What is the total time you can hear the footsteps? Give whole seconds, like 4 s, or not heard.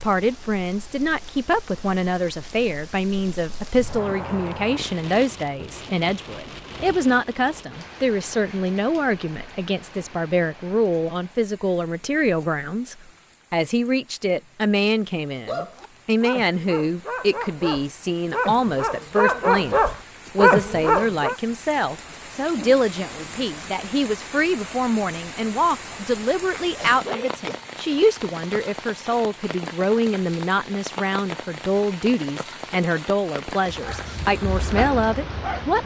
not heard.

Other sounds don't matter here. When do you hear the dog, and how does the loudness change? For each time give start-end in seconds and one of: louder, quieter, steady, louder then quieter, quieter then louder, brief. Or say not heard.
15.4-21.4 louder
33.8-35.8 brief.